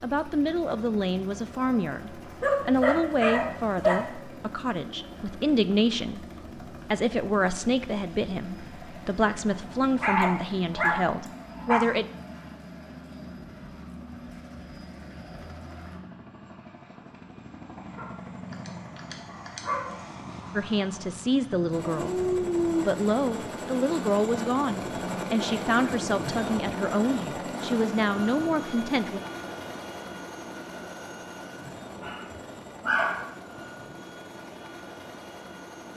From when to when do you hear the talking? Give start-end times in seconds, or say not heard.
0.0-6.2, 6.9-12.1, 20.6-22.1, 22.9-29.2.